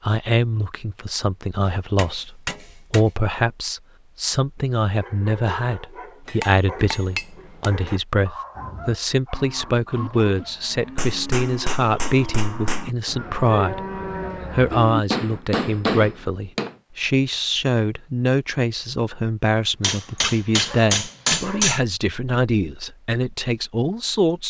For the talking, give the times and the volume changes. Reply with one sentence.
The talking can be heard from 0.0 to 24.4 s, at a steady volume.